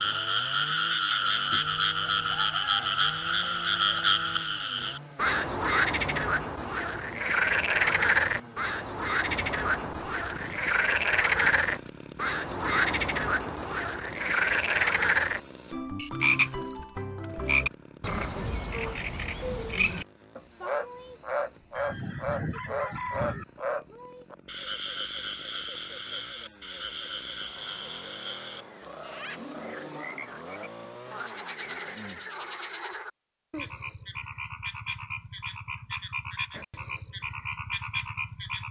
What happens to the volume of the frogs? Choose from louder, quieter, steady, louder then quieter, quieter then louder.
quieter.